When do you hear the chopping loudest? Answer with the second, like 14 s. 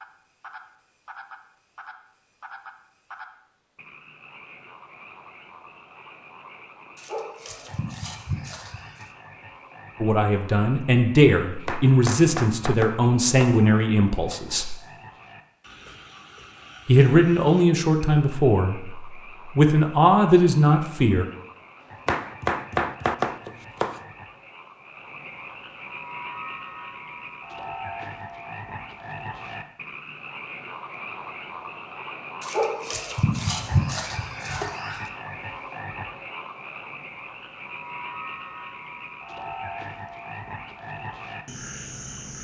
23 s.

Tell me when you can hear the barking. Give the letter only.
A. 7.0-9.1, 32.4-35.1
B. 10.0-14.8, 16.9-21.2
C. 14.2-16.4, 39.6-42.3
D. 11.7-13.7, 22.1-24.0
A.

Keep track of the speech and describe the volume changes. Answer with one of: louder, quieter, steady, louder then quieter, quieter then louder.
steady.